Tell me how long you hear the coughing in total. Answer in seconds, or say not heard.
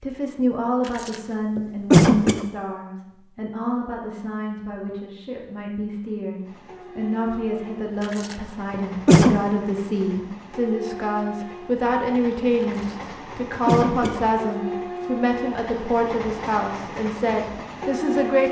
4 s.